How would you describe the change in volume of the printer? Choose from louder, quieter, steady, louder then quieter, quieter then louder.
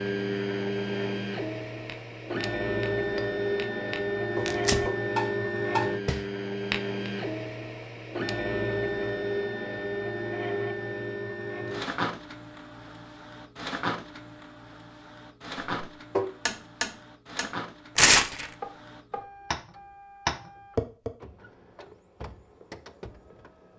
quieter.